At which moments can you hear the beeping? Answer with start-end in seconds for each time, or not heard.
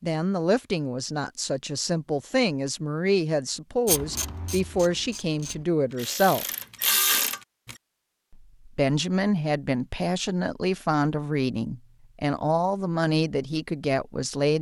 not heard.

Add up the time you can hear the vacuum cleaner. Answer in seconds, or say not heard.
not heard.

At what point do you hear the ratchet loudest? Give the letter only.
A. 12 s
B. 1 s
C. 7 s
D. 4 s
C.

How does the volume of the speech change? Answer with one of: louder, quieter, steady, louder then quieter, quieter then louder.
steady.